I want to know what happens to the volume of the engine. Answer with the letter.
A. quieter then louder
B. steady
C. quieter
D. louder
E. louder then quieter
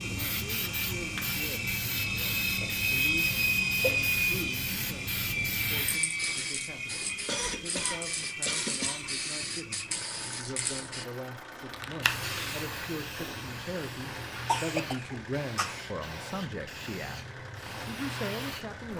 C.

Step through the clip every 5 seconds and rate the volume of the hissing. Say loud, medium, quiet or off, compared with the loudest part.
loud, loud, loud, medium.